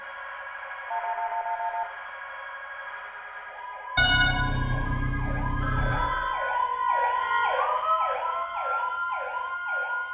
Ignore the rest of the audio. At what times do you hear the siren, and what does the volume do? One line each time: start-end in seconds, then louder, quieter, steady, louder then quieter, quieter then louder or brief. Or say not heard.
0.0-10.0 louder.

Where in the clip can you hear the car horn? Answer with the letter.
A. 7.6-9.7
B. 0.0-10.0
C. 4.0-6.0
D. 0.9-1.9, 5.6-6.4
C.